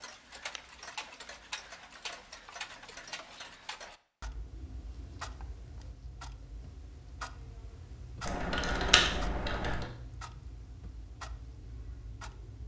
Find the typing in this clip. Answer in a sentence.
You can hear the typing from 8.2 to 9.9 s.